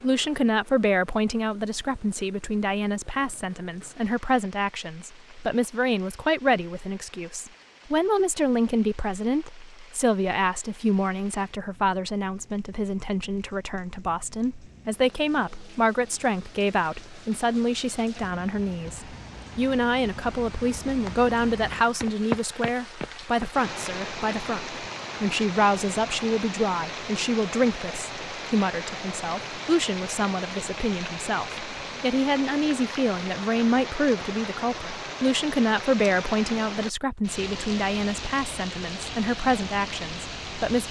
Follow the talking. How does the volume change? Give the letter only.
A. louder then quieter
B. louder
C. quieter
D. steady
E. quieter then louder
D.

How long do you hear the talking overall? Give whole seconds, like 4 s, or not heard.
41 s.